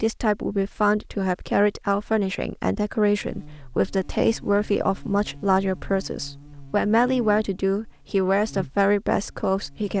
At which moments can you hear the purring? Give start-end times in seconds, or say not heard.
not heard.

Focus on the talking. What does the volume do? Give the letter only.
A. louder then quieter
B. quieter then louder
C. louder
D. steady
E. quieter
D.